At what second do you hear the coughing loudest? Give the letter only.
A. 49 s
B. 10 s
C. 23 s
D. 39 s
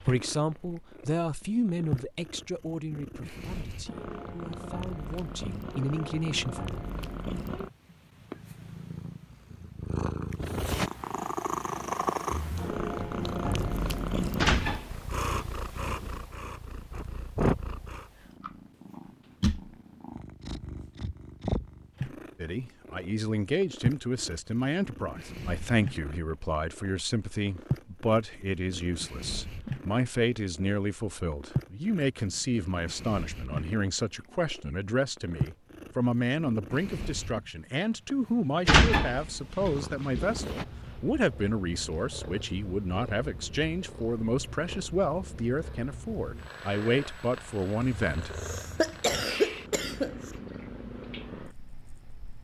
A.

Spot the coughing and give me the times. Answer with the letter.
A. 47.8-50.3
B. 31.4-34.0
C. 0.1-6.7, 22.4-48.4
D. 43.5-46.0
A.